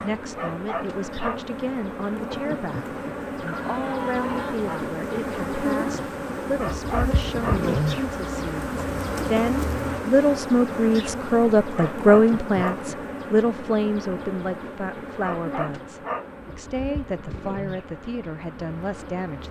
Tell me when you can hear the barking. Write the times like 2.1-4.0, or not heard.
0.3-1.4, 6.5-7.7, 11.8-12.8, 15.2-16.3.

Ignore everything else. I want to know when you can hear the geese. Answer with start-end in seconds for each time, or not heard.
3.4-4.9.